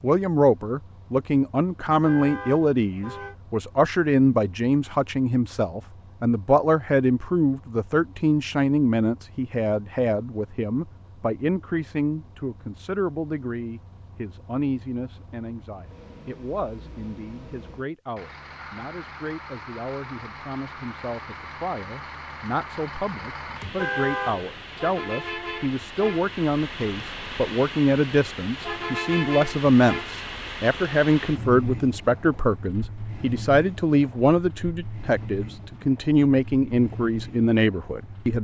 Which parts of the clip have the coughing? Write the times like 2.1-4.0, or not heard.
not heard.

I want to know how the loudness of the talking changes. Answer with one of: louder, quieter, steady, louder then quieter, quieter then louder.
quieter then louder.